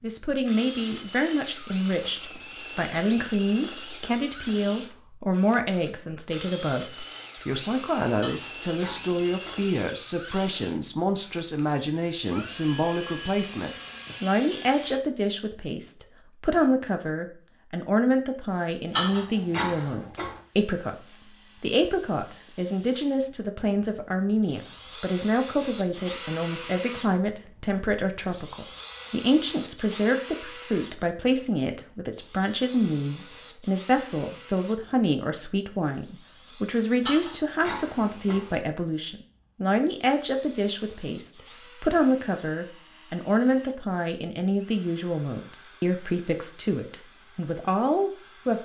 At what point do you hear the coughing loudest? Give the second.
19 s.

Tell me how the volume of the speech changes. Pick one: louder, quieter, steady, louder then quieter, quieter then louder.
steady.